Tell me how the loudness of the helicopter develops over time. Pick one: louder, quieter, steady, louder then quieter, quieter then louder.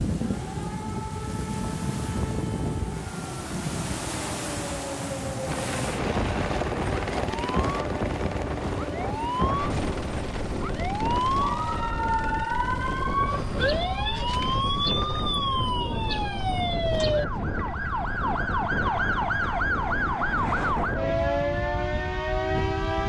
quieter.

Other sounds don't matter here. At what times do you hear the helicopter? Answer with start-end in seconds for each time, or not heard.
5.4-13.8.